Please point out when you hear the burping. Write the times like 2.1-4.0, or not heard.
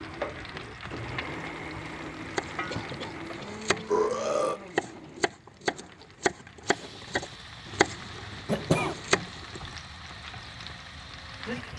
2.9-4.6.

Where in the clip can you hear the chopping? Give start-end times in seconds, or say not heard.
2.2-9.7.